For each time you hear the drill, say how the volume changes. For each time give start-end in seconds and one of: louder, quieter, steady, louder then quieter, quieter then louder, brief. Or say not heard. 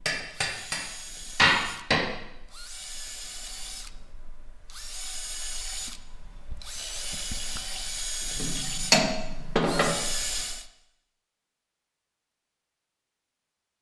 0.0-10.7 louder.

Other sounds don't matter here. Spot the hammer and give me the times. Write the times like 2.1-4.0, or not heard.
0.1-2.0, 8.4-9.9.